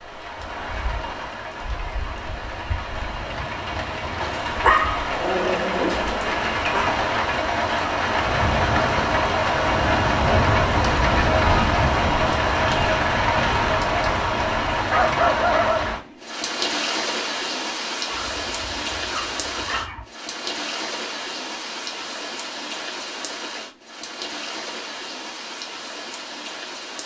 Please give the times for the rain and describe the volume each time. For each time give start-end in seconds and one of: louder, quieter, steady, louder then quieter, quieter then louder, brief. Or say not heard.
0.0-27.0 louder then quieter.